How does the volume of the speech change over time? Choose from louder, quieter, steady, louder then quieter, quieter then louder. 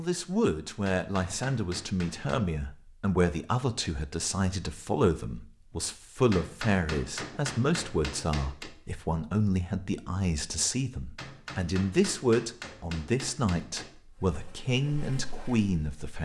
steady.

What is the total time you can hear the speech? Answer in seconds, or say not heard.
16 s.